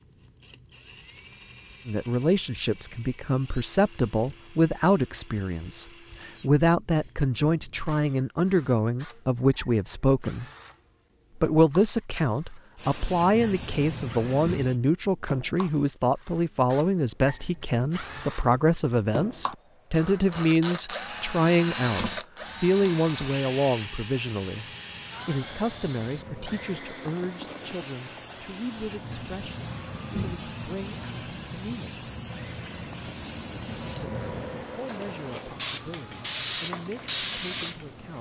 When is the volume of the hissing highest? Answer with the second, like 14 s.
37 s.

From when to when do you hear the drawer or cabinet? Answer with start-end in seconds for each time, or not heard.
not heard.